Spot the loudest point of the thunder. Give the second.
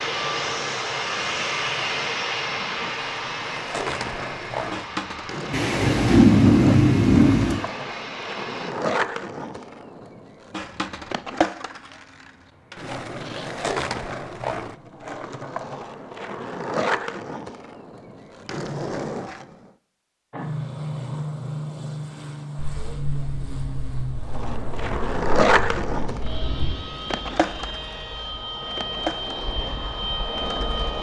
6 s.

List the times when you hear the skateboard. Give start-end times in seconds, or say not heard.
0.0-19.8, 24.2-30.9.